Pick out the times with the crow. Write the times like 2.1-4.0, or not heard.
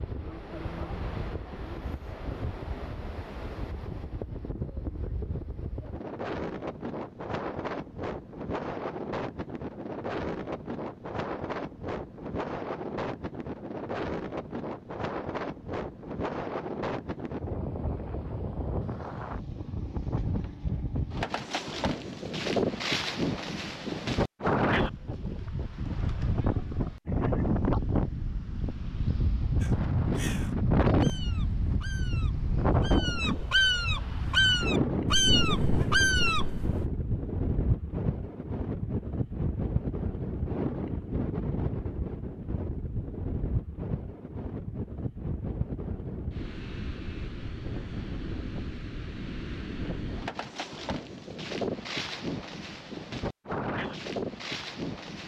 29.6-36.9.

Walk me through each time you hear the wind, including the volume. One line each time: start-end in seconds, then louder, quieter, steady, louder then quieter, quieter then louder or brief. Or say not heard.
0.0-55.2 louder then quieter.